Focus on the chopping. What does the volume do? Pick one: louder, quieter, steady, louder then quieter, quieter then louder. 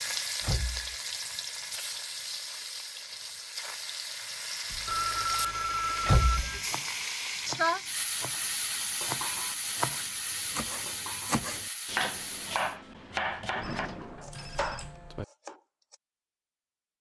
louder.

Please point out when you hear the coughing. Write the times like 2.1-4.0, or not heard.
not heard.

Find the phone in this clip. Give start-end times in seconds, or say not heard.
4.7-6.7, 13.6-15.2.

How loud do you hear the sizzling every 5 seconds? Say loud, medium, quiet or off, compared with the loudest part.
loud, loud, medium, off.